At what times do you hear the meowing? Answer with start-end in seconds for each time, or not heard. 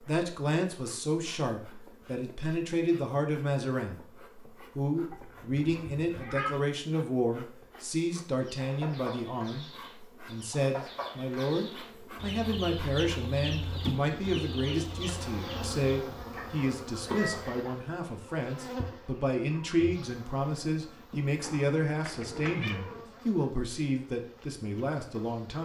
5.1-6.7, 21.4-23.1.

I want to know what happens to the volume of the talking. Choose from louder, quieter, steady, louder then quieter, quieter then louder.
steady.